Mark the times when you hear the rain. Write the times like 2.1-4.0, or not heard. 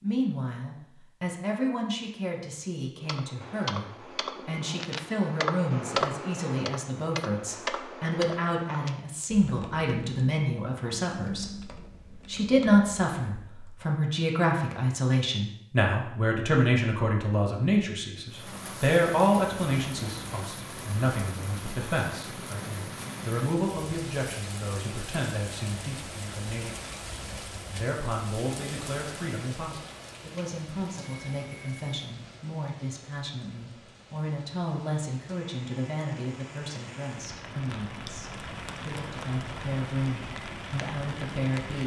18.2-41.8.